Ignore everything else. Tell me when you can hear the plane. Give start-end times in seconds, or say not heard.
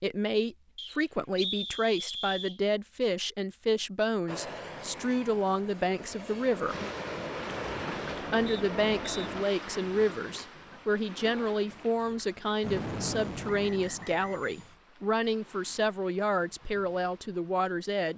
4.2-9.4, 12.6-14.8.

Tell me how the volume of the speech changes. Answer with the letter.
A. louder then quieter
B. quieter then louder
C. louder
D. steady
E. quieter
D.